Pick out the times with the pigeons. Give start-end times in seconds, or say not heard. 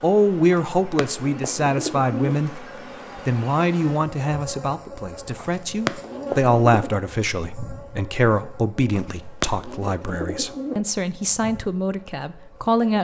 0.5-2.4, 5.3-7.0, 8.9-10.8.